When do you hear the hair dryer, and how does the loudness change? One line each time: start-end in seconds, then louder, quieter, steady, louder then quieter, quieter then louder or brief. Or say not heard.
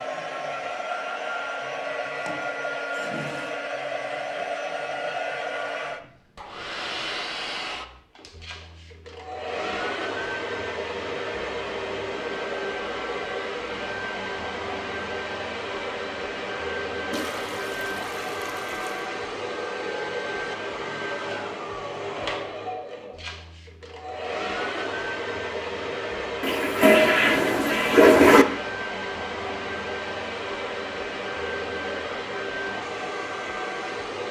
0.0-34.2 steady.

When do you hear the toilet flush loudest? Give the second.
28 s.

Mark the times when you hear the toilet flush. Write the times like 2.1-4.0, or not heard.
2.1-3.6, 17.1-19.0, 26.4-28.4.